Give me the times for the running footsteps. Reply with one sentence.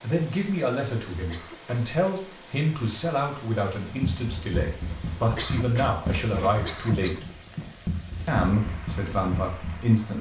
The running footsteps can be heard from 4.0 to 9.8 s.